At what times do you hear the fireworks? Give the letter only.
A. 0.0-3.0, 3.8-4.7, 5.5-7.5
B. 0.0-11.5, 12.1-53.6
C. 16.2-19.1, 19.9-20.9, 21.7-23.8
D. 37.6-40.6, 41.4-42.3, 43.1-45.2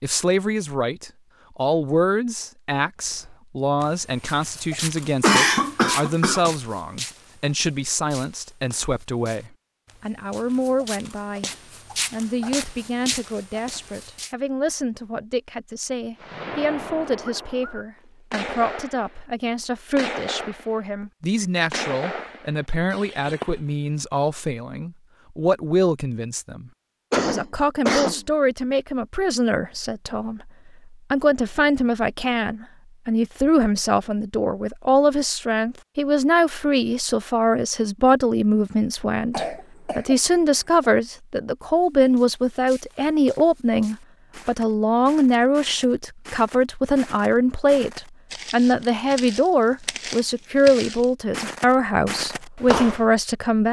C.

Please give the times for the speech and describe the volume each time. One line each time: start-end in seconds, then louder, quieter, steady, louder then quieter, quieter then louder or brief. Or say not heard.
0.0-11.5 steady
12.1-53.6 louder.